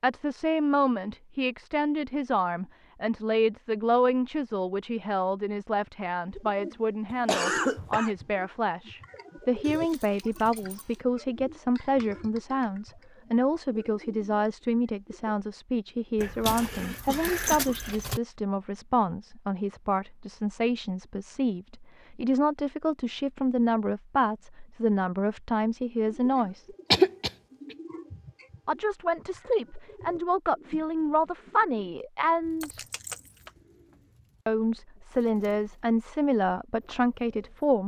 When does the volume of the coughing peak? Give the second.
27 s.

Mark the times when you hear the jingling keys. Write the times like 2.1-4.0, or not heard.
9.6-11.0, 16.1-18.2, 32.6-33.6.